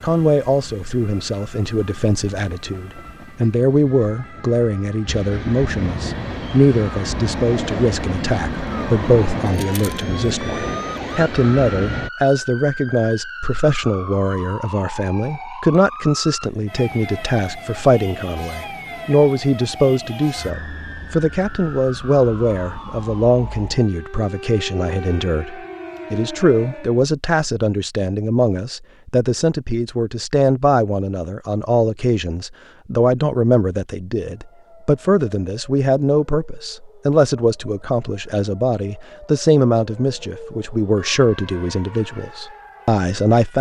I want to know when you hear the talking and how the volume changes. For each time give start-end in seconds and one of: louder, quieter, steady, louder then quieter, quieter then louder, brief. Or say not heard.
0.0-43.5 steady.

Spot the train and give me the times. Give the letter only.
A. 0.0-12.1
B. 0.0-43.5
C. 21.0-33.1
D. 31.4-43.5
A.